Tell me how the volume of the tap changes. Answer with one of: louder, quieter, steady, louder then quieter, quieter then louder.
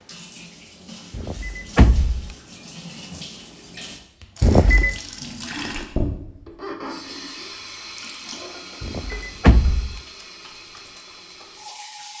louder then quieter.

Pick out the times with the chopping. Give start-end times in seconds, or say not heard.
not heard.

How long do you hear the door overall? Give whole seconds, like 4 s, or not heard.
3 s.